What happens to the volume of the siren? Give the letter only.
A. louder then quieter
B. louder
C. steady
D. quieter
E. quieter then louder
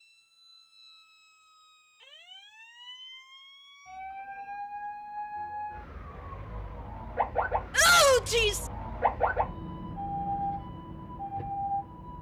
B.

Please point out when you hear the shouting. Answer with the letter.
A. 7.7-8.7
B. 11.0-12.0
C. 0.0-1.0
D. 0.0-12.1
A.